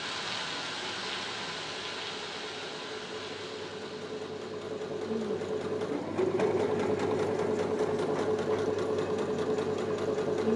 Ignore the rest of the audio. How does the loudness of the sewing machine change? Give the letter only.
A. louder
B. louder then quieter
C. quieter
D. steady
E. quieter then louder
A.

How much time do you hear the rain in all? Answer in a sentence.
The rain can be heard for 10 seconds in total.